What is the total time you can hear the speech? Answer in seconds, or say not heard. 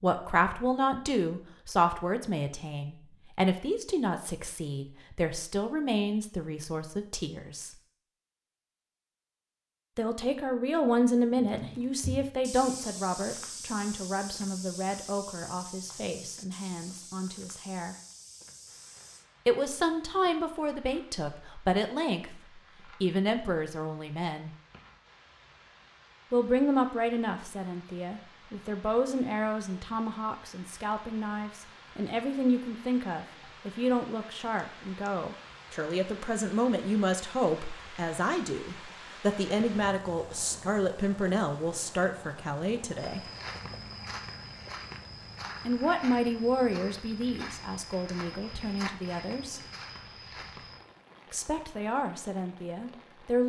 44 s.